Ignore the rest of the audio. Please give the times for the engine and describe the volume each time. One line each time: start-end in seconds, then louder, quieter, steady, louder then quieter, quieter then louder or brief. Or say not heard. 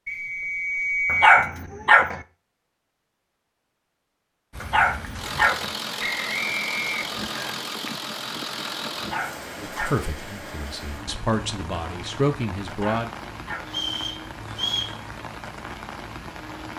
5.2-9.2 steady.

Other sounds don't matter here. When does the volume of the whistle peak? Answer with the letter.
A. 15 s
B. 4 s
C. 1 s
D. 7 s
C.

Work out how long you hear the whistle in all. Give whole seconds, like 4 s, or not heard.
4 s.